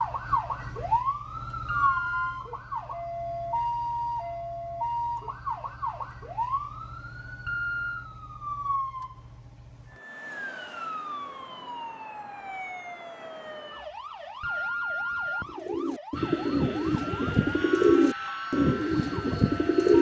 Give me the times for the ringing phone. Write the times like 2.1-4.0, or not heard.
1.6-2.4, 7.5-8.1, 14.4-15.6.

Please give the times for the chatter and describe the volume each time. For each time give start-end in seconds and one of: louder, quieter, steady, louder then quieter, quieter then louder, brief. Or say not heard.
not heard.